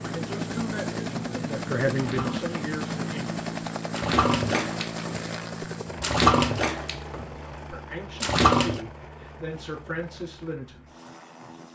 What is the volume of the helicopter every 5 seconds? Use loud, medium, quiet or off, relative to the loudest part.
loud, medium, quiet.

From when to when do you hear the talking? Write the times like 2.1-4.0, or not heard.
0.0-3.4, 7.7-10.8.